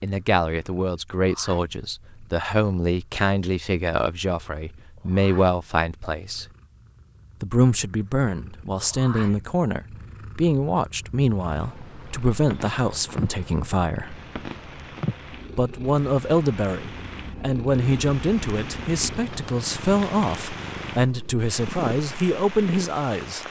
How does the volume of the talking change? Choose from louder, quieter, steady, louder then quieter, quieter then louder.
steady.